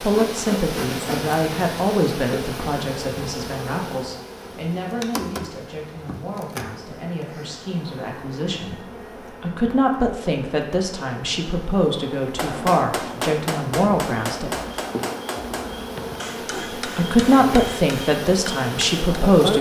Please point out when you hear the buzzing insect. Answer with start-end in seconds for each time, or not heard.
0.0-19.5.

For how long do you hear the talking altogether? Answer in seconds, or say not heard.
17 s.